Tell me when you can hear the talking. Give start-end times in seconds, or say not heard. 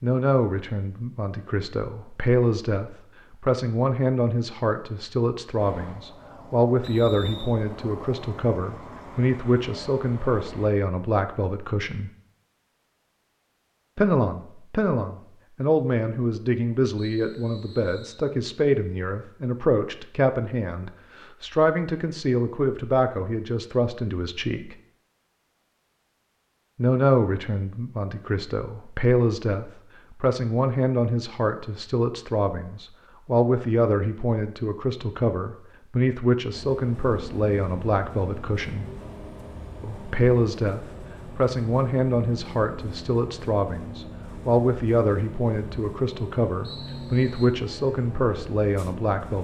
0.0-12.1, 13.9-24.8, 26.8-38.9, 39.8-49.3.